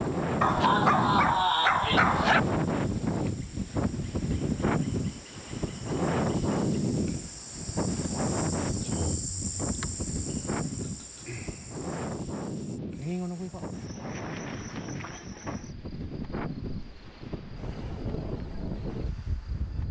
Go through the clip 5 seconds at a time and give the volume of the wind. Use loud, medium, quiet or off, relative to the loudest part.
loud, loud, medium, medium.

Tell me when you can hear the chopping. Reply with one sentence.
The chopping can't be heard in this clip.